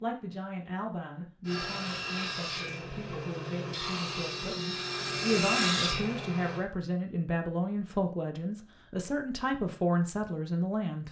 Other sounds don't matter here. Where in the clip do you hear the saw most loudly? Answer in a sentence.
The volume of the saw peaks at 6 seconds.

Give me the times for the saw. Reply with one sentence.
The saw can be heard from 1.4 to 6.7 s.